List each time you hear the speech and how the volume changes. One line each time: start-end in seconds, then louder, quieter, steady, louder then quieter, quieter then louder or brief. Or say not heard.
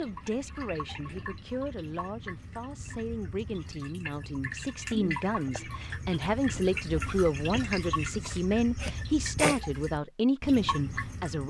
0.0-11.4 louder.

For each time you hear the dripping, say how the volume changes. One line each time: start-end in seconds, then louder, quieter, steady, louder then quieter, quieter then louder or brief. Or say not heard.
0.0-11.4 louder.